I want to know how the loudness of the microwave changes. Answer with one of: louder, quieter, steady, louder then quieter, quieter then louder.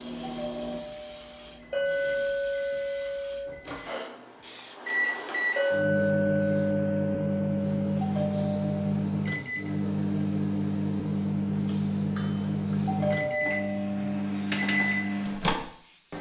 louder.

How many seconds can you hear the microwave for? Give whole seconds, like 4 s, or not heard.
16 s.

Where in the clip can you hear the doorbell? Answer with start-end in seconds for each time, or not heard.
0.2-1.6, 8.0-8.9, 12.8-14.0.